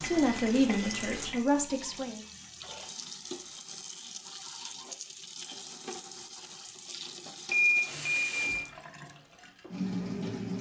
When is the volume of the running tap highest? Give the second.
10 s.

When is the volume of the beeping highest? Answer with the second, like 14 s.
8 s.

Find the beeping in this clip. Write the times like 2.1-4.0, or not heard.
0.0-1.4, 7.5-8.7.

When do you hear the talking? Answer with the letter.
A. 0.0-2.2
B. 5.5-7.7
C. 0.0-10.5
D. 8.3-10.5
A.